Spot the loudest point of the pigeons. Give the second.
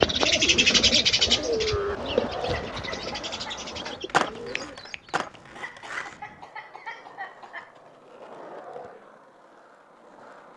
1 s.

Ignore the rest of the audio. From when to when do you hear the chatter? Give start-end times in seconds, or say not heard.
not heard.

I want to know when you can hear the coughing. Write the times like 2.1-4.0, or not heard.
2.5-3.7, 5.5-7.8.